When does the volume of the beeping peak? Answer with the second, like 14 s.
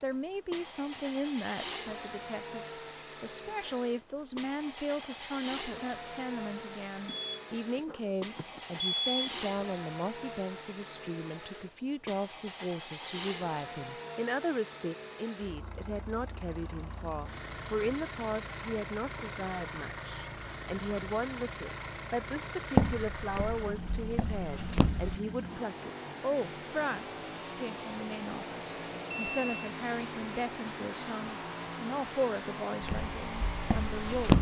9 s.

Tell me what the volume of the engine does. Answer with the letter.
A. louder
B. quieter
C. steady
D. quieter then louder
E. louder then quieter
C.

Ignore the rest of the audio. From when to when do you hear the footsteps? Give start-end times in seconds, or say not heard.
22.8-25.1, 32.8-34.3.